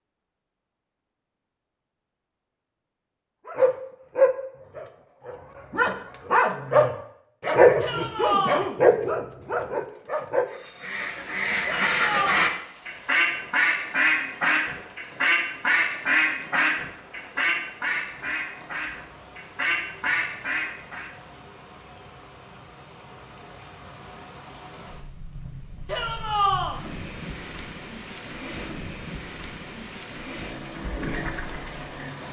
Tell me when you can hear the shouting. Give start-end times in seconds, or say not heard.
7.8-8.7, 11.7-12.6, 25.9-26.8.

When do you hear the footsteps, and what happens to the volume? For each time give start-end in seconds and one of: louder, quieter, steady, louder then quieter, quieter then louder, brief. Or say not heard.
not heard.